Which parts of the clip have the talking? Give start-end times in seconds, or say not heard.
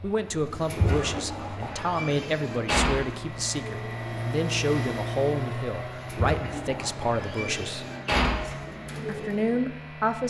0.0-7.8, 9.1-10.2.